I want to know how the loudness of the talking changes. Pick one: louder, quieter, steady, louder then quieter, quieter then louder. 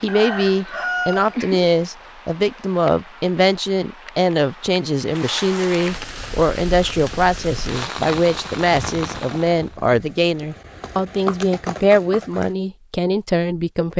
steady.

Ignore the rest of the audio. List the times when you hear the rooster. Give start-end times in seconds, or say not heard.
0.1-1.7.